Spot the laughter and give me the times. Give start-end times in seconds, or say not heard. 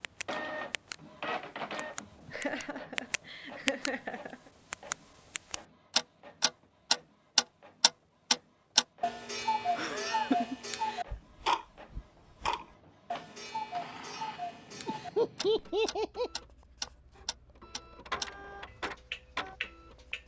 2.2-4.5, 9.8-10.6, 14.8-16.3.